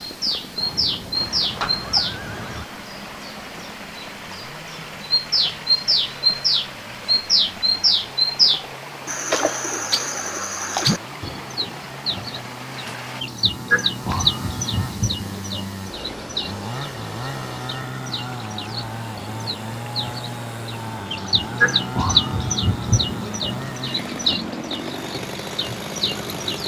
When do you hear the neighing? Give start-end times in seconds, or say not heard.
0.7-2.6.